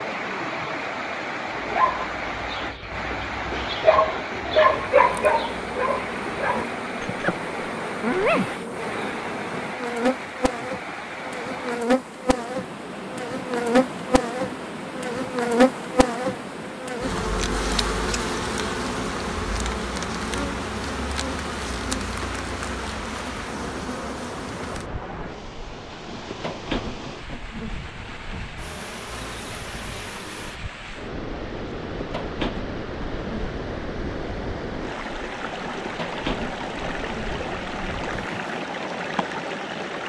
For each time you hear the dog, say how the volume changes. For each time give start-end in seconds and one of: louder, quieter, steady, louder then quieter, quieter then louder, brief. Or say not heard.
1.6-7.3 louder then quieter
8.0-8.7 brief.